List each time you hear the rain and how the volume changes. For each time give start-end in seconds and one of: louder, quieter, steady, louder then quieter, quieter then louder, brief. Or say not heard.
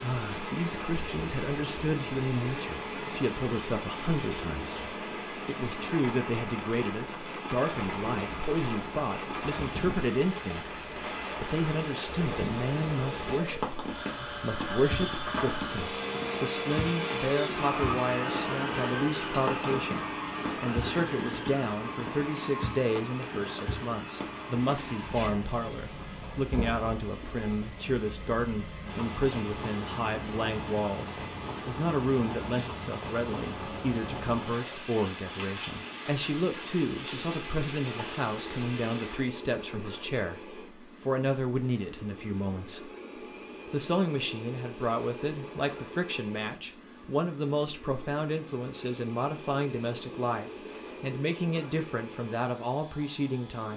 0.0-39.2 steady.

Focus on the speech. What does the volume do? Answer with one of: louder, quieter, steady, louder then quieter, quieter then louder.
steady.